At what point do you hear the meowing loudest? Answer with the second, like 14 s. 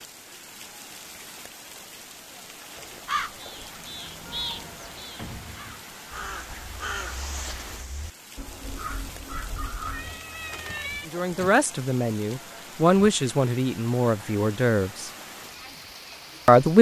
11 s.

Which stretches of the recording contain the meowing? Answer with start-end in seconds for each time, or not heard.
4.0-4.8, 9.6-11.1.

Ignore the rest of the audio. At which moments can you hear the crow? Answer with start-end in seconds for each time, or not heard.
2.8-10.2.